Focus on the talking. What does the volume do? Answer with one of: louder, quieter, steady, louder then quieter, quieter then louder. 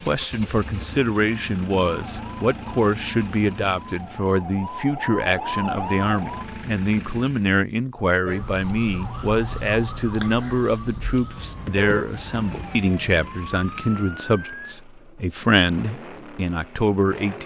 steady.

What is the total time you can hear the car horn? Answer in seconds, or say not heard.
2 s.